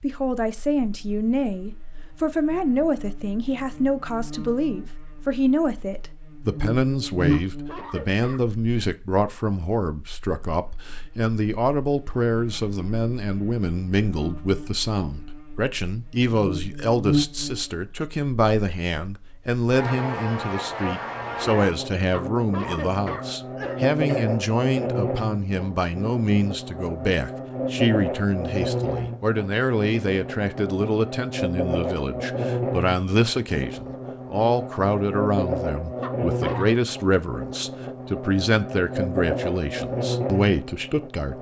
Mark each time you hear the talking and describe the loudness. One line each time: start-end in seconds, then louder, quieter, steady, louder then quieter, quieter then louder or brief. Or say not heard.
0.0-41.3 steady.